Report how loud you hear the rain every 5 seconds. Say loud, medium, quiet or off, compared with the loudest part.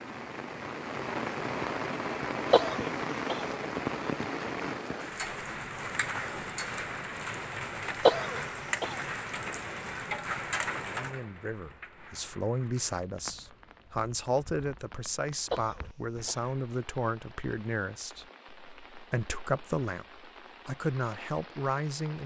loud, loud, medium, quiet, quiet.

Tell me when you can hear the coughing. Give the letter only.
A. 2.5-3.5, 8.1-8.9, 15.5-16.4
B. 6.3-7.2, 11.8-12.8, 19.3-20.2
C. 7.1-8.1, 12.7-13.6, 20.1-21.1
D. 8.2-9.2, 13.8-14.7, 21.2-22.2
A.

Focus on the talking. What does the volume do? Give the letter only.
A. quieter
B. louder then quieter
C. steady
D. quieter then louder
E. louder
C.